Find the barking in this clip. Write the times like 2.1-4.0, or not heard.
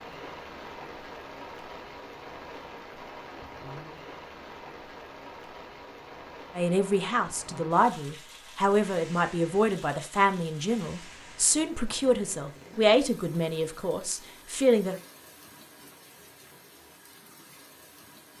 not heard.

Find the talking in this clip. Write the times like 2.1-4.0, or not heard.
6.5-15.0.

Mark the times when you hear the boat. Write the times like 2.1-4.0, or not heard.
not heard.